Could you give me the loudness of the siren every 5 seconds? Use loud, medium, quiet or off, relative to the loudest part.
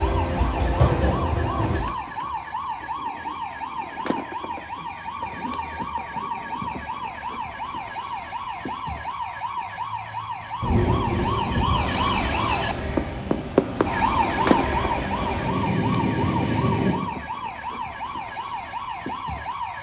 medium, medium, loud, medium.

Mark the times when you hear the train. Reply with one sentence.
You can hear the train from 0.0 to 1.8 s and from 10.6 to 16.9 s.